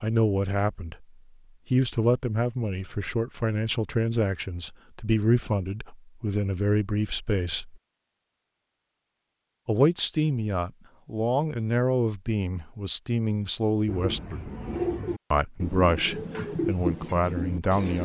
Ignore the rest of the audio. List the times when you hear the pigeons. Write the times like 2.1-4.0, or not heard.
13.8-18.0.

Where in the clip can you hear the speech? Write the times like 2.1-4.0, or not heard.
0.0-1.1, 1.7-7.8, 9.7-14.5, 15.3-18.0.